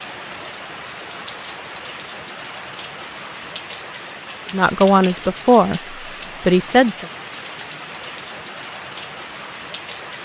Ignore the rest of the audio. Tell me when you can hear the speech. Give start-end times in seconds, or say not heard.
4.5-7.0.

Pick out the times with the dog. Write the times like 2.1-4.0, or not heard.
not heard.